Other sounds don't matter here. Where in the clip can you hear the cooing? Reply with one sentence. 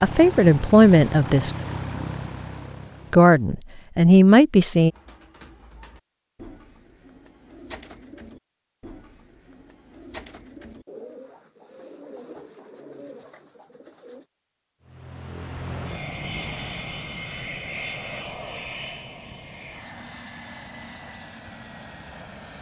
You can hear the cooing from 4.8 to 14.2 s.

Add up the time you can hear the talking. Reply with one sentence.
You can hear the talking for 3 seconds altogether.